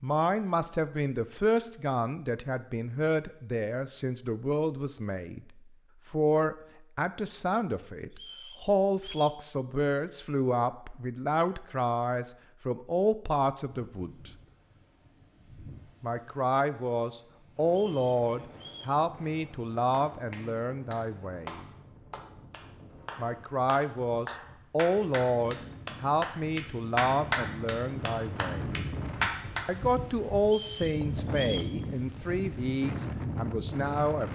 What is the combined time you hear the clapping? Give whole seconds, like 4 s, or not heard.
10 s.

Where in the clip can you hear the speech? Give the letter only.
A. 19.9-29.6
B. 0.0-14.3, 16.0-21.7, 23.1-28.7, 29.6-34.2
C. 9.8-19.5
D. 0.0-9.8
B.